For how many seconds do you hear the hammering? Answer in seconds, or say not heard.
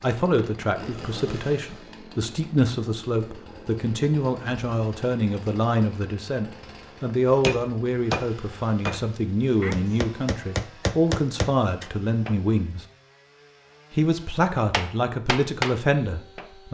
7 s.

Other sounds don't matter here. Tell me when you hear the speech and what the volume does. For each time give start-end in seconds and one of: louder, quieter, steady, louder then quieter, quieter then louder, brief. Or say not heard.
0.0-12.8 steady
13.9-16.6 brief.